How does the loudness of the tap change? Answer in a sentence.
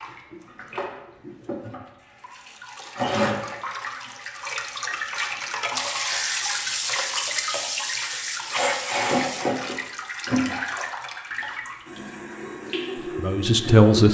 The loudness of the tap goes up, then down.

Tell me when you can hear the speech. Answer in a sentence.
You can hear the speech from 13.1 to 14.1 s.